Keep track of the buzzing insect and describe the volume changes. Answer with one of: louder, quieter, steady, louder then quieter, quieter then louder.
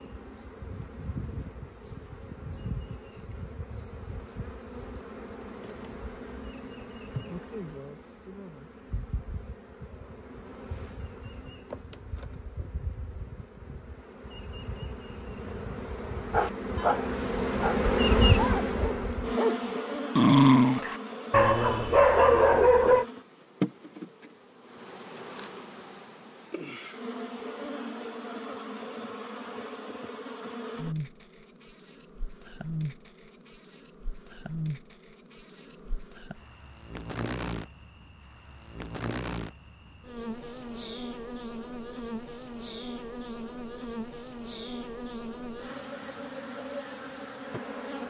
louder then quieter.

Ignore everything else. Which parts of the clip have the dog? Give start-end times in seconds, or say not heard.
16.3-23.1.